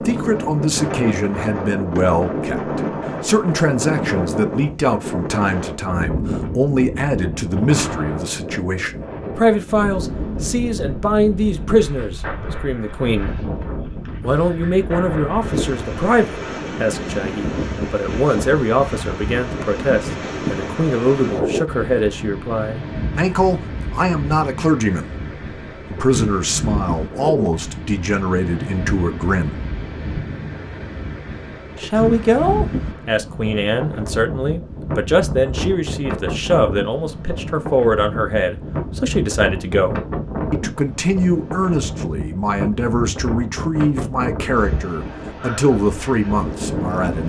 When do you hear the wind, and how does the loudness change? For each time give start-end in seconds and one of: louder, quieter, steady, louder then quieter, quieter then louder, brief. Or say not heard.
0.0-47.2 steady.